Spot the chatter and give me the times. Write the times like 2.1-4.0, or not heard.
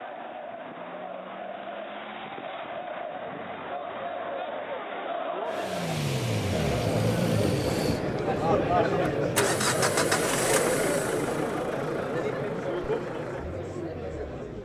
0.0-14.6.